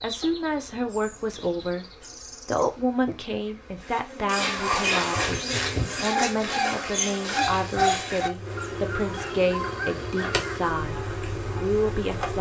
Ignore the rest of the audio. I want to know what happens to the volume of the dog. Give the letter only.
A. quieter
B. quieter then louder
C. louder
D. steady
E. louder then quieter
A.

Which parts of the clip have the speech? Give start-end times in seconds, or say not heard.
0.0-1.9, 2.5-12.3.